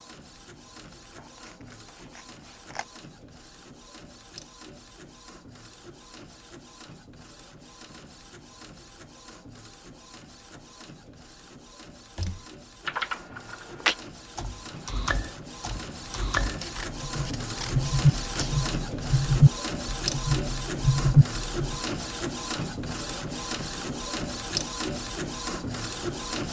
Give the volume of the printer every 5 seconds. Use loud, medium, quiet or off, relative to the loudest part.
quiet, quiet, quiet, loud, loud, loud.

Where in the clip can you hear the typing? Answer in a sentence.
The typing can be heard from 12.2 to 21.8 s.